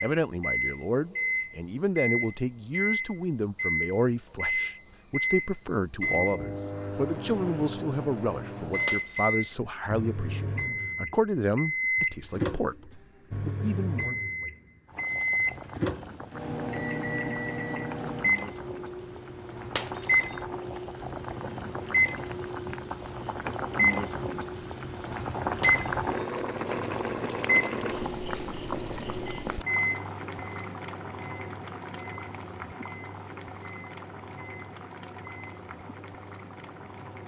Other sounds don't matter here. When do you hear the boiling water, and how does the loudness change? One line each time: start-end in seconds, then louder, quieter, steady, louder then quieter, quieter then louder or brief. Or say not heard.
14.8-37.2 louder then quieter.